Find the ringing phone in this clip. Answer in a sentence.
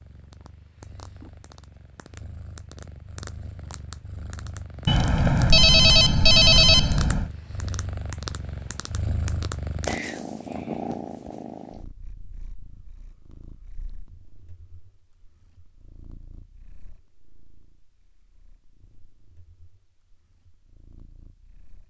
You can hear the ringing phone from 4.8 to 7.3 s.